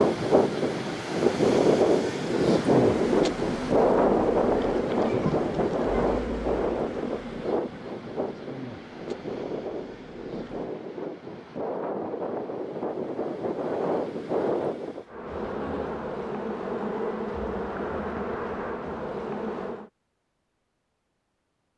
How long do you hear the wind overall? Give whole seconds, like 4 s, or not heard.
15 s.